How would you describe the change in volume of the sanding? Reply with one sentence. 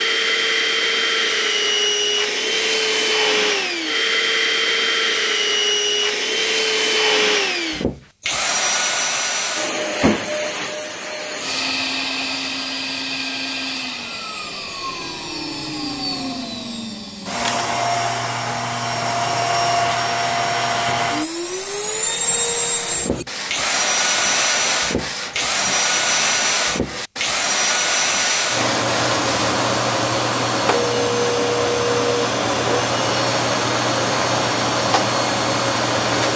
The loudness of the sanding stays about the same.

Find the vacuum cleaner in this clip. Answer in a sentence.
You can hear the vacuum cleaner from 0.0 to 36.3 s.